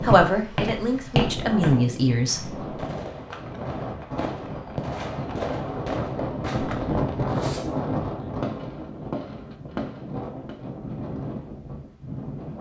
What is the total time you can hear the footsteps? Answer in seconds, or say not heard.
2 s.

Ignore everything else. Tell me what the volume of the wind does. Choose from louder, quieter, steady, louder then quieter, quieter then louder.
louder then quieter.